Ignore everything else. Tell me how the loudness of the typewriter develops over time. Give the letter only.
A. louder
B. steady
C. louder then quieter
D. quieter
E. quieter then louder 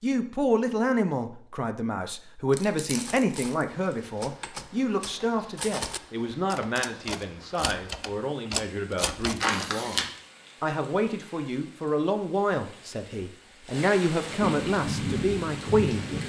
A.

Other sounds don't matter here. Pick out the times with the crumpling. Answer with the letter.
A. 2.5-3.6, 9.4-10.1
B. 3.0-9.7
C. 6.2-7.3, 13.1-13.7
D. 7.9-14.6
A.